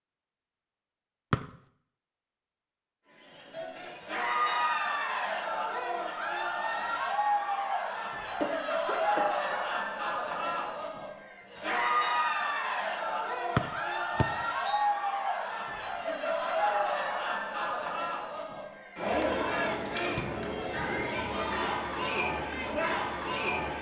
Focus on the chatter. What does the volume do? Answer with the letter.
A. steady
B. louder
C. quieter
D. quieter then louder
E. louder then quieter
A.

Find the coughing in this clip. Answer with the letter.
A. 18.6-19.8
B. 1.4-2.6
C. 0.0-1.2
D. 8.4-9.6
D.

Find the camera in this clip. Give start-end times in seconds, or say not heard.
not heard.